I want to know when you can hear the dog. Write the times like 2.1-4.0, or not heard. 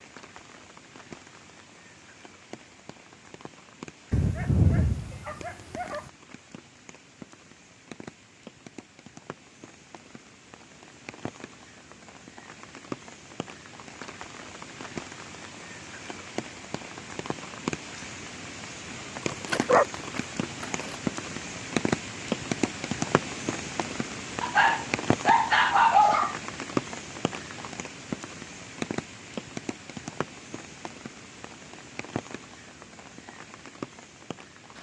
4.1-6.0, 19.2-20.9, 24.4-26.4.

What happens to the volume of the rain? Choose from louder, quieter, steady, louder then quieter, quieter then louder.
louder then quieter.